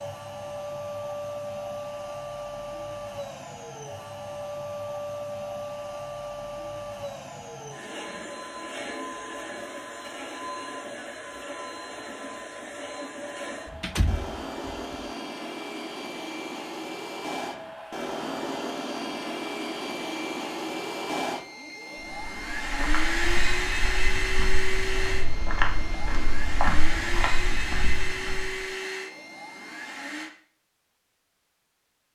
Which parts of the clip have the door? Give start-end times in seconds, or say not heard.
13.7-14.8.